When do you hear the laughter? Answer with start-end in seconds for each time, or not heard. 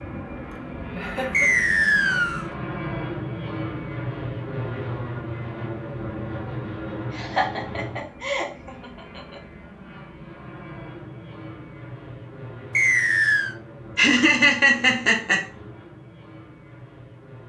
0.5-1.4, 7.2-9.4, 13.9-15.4.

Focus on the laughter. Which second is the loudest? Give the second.
15 s.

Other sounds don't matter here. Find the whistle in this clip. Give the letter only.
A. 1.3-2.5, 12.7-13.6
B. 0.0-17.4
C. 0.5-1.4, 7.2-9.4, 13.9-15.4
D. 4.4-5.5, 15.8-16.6
A.